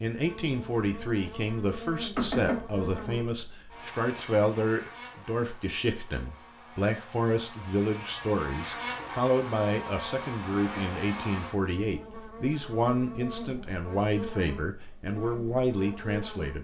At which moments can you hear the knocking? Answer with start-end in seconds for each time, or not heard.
2.1-3.1.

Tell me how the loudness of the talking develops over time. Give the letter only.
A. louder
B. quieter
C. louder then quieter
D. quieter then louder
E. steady
E.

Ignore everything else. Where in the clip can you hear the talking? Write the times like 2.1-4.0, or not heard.
0.0-16.5.